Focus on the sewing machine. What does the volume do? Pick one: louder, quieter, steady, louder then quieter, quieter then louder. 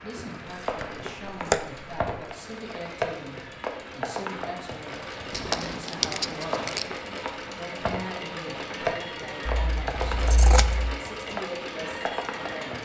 louder.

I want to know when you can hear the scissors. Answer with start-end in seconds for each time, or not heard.
0.6-1.6, 5.3-6.8, 9.4-10.9.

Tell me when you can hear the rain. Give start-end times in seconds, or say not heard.
0.0-12.8.